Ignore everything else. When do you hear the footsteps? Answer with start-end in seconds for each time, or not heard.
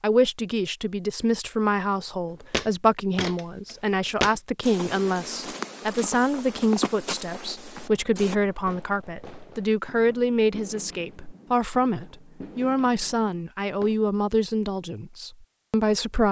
2.5-8.3.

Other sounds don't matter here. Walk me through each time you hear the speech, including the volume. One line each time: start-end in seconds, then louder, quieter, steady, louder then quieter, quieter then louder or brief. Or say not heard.
0.0-16.2 steady.